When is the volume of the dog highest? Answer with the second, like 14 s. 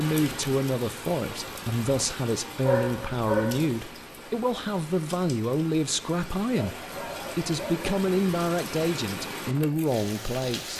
3 s.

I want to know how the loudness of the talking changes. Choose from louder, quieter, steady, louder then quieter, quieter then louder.
steady.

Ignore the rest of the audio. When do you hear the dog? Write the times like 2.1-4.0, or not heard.
2.6-3.7, 6.5-8.0.